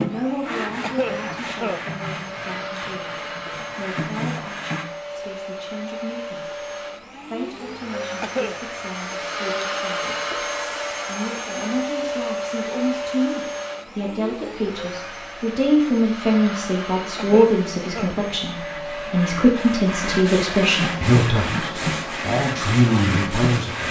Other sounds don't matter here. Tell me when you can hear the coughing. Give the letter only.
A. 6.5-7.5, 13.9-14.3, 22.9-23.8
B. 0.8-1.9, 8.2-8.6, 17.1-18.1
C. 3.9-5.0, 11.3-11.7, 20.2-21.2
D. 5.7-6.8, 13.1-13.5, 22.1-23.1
B.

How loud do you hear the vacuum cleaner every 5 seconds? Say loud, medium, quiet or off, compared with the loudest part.
medium, loud, loud, medium, medium.